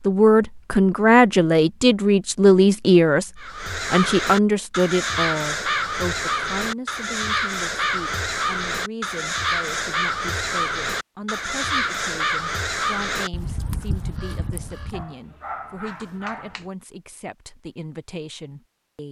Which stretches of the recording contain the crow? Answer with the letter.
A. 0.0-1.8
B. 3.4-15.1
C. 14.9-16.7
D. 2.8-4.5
B.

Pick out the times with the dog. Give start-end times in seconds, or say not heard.
14.9-16.7.